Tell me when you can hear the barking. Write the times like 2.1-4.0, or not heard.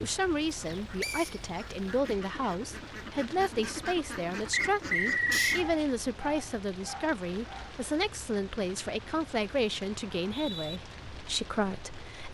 5.3-7.8.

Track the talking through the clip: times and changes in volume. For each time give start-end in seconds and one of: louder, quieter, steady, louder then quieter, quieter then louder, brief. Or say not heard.
0.0-12.2 steady.